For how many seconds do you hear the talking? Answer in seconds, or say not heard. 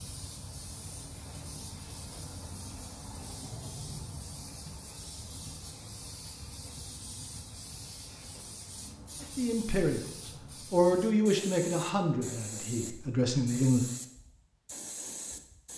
5 s.